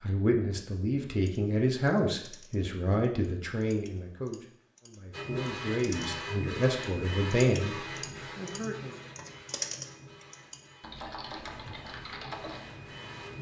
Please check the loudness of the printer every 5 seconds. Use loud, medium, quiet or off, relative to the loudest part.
off, loud, medium.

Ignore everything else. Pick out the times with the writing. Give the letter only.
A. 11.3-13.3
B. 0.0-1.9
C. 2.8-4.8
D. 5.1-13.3
A.